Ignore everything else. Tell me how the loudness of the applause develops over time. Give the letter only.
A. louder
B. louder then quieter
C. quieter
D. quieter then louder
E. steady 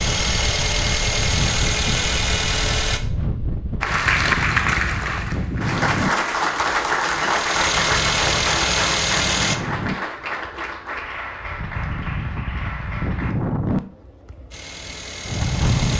C.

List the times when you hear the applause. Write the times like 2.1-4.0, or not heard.
3.8-13.3.